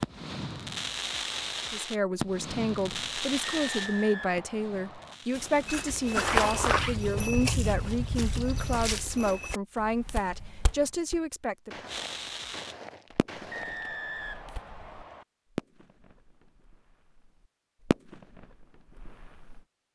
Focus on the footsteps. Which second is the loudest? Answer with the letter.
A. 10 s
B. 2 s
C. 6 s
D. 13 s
C.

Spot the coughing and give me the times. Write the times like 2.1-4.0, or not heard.
not heard.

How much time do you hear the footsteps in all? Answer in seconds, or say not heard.
10 s.